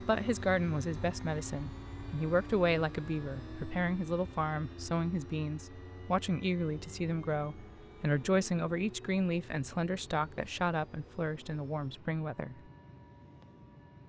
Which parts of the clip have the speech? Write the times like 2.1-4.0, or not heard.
0.0-12.6.